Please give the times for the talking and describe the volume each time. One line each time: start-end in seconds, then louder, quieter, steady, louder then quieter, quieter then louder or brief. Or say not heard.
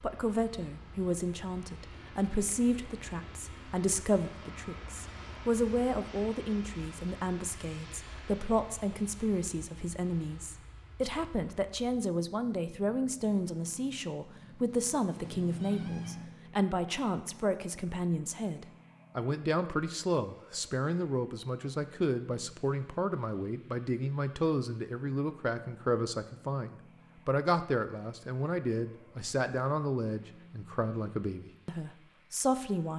0.0-32.9 steady.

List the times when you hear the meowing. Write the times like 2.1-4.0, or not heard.
15.2-16.4.